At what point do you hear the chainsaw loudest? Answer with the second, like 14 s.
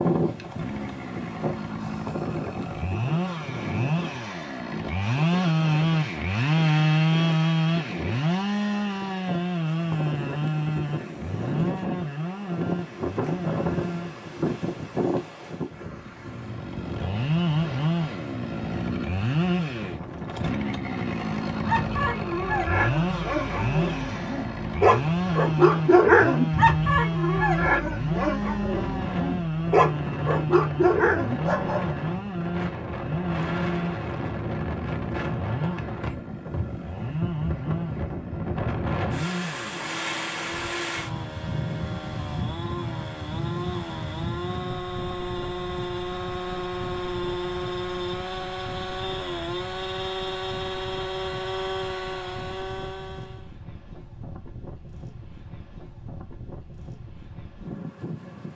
7 s.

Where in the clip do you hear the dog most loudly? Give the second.
26 s.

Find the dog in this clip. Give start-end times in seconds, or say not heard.
21.6-31.9.